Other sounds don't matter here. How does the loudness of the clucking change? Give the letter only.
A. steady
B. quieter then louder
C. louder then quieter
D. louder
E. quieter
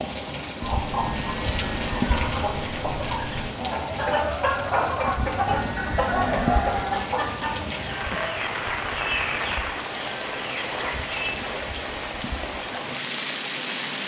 C.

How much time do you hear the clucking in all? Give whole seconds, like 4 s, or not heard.
11 s.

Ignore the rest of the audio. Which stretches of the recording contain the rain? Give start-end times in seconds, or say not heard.
0.0-14.0.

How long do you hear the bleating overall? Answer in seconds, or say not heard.
5 s.